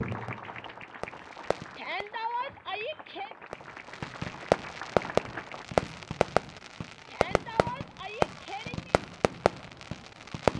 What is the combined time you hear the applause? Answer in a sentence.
The applause can be heard for 6 seconds in total.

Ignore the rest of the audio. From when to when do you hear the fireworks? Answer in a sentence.
You can hear the fireworks from 0.0 to 2.0 s and from 3.5 to 10.5 s.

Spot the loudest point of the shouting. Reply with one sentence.
The volume of the shouting peaks at 2 seconds.